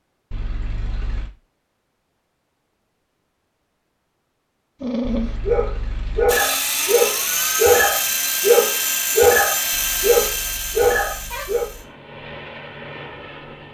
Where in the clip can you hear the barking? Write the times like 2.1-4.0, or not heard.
4.8-11.7.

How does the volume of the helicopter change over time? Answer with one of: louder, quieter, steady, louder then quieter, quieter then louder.
quieter.